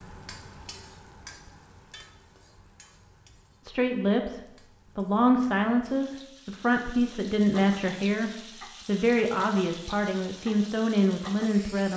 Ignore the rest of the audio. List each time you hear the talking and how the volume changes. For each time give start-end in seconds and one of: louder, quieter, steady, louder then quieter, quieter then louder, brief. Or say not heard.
3.6-11.9 steady.